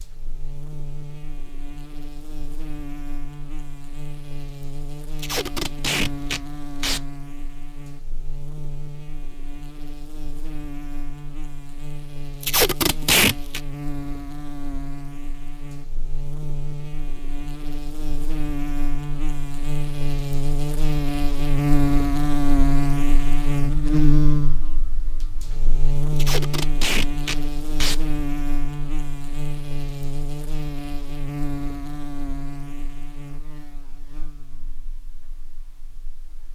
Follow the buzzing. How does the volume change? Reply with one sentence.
The volume of the buzzing goes up, then down.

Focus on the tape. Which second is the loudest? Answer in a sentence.
The volume of the tape peaks at 13 seconds.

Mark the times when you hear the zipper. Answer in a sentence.
The zipper can't be heard in this clip.